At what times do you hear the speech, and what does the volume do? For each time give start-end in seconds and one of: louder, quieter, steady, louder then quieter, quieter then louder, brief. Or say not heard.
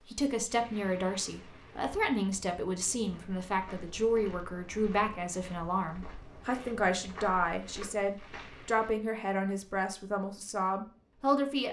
0.1-11.6 steady.